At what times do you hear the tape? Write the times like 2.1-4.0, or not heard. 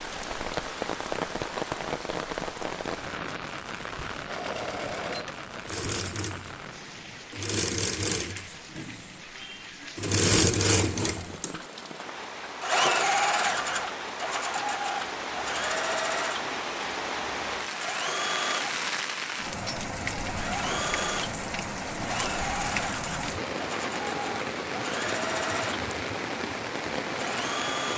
not heard.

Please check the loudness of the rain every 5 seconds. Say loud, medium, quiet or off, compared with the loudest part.
loud, medium, medium, loud, loud, loud.